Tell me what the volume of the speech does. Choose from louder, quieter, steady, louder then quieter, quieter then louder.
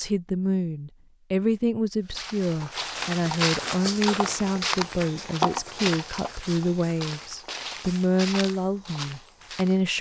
steady.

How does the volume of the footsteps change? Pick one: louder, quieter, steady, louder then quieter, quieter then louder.
quieter.